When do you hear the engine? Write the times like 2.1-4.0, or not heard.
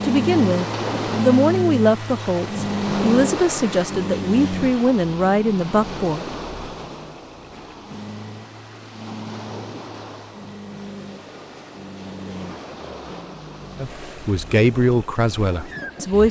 0.0-16.2.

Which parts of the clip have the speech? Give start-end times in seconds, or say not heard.
0.0-6.2, 13.8-16.2.